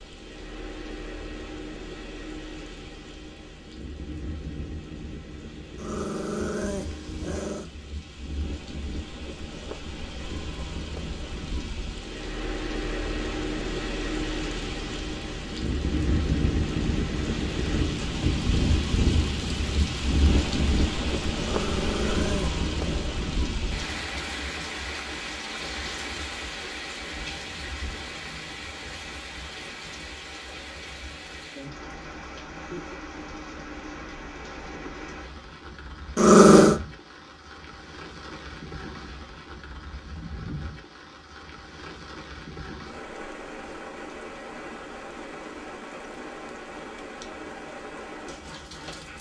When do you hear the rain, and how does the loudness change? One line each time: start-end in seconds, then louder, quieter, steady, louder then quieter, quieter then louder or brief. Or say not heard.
0.0-49.1 louder then quieter.